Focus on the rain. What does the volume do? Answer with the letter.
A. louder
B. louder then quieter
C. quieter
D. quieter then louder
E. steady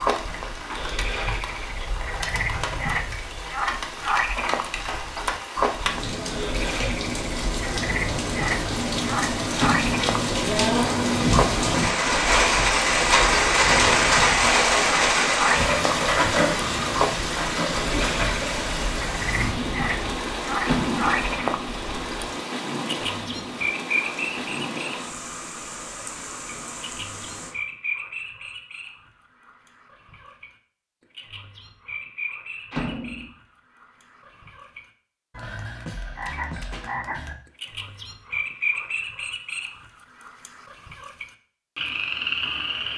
B.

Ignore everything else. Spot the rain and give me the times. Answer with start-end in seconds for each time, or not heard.
0.0-27.6.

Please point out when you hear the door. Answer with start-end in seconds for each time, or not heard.
9.6-10.2, 20.6-21.2, 32.7-33.3.